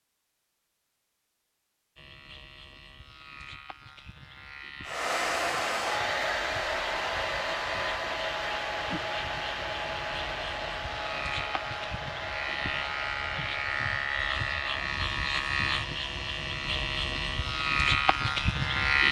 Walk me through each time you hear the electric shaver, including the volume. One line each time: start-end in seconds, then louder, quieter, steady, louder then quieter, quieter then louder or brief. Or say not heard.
1.9-19.0 louder.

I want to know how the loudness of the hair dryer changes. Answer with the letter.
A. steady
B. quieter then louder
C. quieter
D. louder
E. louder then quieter
C.